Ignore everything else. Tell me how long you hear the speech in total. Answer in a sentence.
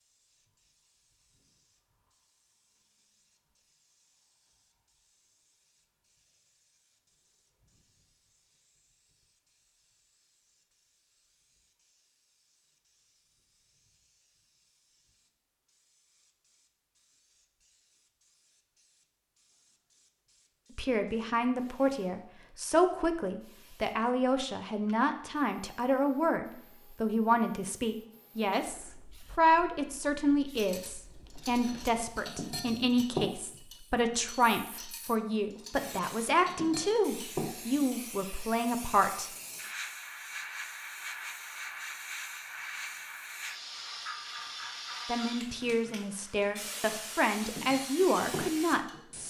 You can hear the speech for 23 seconds altogether.